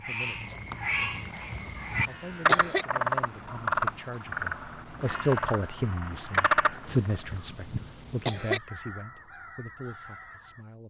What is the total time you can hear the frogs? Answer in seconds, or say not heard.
7 s.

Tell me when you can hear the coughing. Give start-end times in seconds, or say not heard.
1.1-2.9, 6.8-8.6.